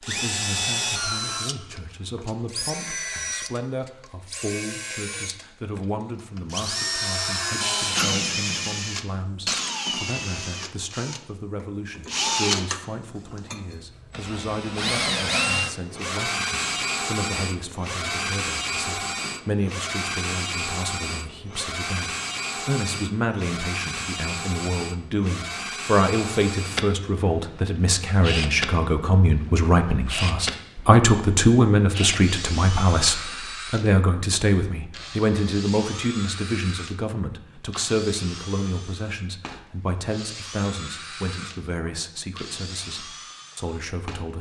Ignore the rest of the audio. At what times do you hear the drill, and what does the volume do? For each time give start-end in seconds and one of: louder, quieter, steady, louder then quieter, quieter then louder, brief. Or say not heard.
0.0-44.3 quieter.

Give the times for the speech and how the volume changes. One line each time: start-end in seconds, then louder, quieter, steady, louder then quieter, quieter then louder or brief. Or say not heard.
0.0-44.3 louder then quieter.